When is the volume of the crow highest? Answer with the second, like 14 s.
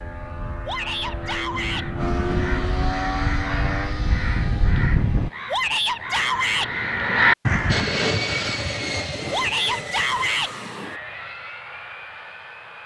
7 s.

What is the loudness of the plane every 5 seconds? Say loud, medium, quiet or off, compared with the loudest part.
loud, loud, medium.